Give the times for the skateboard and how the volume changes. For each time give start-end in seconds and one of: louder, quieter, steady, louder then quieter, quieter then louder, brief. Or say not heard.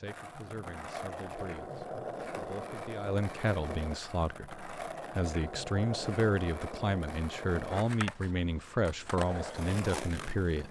0.0-10.6 steady.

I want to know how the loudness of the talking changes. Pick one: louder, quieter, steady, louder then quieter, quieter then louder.
louder.